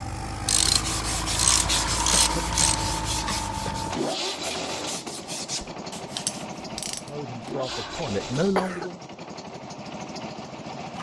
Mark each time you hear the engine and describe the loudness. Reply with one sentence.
The engine can be heard from 0.0 to 10.9 s, getting quieter.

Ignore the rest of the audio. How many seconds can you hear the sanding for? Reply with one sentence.
You can hear the sanding for 6 seconds altogether.